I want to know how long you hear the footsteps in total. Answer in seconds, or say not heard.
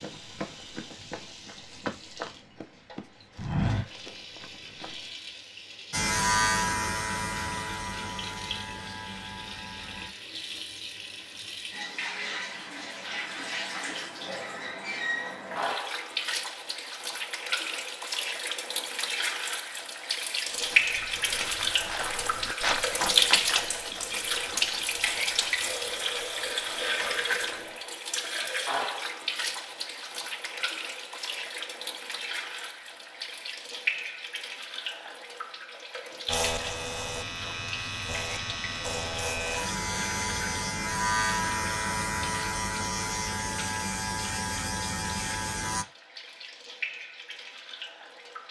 12 s.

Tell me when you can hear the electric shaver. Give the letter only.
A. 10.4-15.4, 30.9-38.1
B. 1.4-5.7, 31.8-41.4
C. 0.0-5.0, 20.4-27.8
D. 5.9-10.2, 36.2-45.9
D.